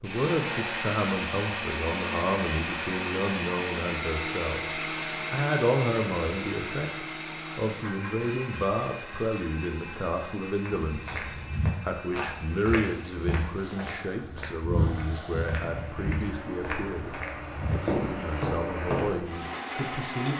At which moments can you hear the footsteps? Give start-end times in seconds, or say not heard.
10.7-19.3.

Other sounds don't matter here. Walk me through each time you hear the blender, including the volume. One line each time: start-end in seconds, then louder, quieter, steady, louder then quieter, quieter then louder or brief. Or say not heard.
0.0-20.3 quieter then louder.